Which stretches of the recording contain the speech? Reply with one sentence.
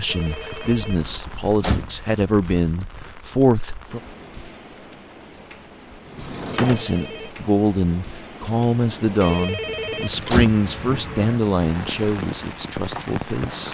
You can hear the speech from 0.0 to 4.0 s and from 6.5 to 13.6 s.